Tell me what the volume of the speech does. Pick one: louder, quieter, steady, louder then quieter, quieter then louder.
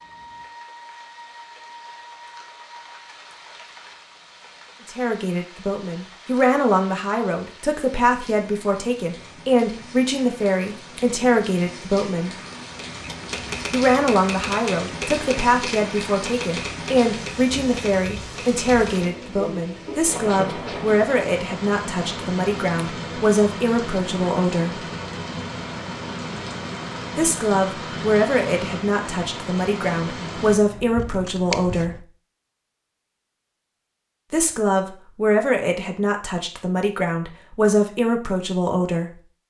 steady.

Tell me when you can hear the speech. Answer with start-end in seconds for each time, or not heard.
4.8-12.3, 13.7-24.9, 27.1-32.0, 34.3-39.1.